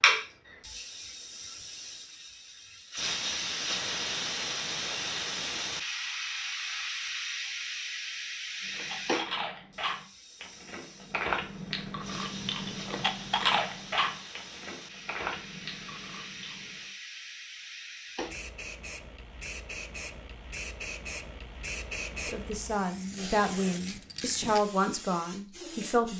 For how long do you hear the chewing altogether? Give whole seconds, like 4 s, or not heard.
8 s.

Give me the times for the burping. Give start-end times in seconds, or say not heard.
not heard.